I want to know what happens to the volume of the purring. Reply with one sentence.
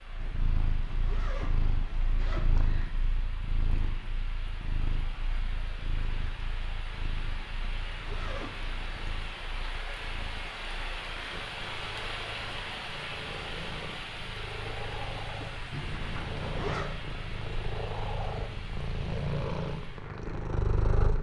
The loudness of the purring goes down, then up.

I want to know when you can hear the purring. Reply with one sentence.
The purring can be heard from 0.0 to 21.1 s.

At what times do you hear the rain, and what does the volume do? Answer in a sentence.
The rain can be heard from 0.0 to 21.1 s, getting louder then quieter.